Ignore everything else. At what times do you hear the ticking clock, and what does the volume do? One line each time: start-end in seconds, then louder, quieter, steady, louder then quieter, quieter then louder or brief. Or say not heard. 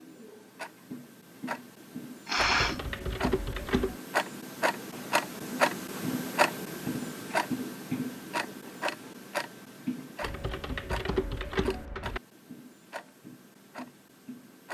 0.0-14.6 louder then quieter.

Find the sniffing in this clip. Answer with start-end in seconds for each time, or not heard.
2.2-2.8.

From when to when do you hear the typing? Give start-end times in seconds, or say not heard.
2.4-4.0, 10.2-12.2.